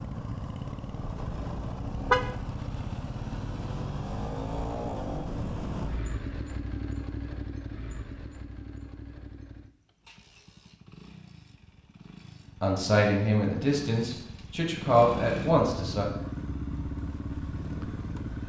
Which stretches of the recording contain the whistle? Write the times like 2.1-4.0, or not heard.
not heard.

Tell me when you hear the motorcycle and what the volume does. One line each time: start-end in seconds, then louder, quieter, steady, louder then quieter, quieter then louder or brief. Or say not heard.
0.0-18.4 quieter then louder.